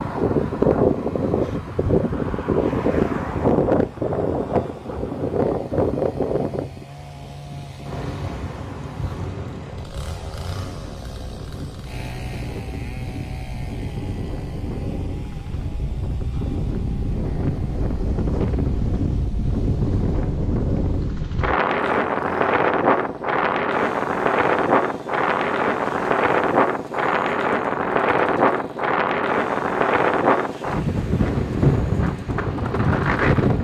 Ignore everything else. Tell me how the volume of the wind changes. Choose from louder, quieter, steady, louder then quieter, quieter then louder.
quieter then louder.